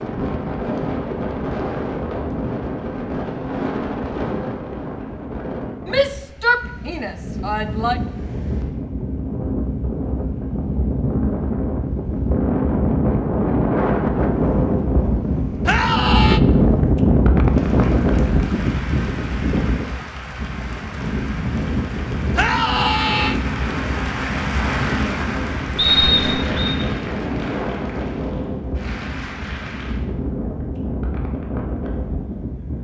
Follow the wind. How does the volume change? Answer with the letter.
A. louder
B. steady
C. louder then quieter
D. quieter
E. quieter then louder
C.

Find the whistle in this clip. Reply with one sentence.
The whistle can be heard from 25.8 to 26.8 s.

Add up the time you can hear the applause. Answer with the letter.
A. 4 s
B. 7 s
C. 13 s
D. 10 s
C.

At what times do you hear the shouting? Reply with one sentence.
You can hear the shouting from 5.8 to 8.0 s, from 15.7 to 16.4 s and from 22.4 to 23.4 s.